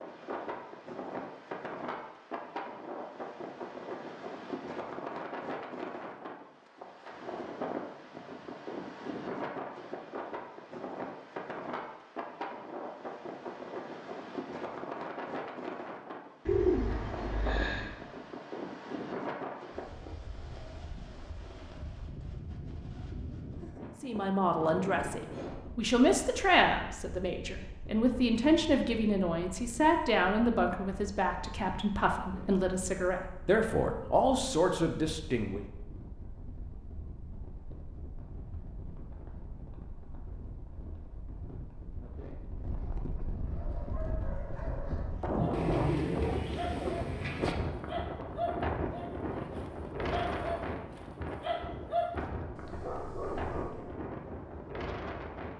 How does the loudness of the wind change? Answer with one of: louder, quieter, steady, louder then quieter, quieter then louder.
quieter then louder.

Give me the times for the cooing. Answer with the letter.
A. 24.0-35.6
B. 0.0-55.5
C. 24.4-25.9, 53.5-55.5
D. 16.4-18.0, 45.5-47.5
D.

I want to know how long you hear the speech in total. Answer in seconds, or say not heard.
12 s.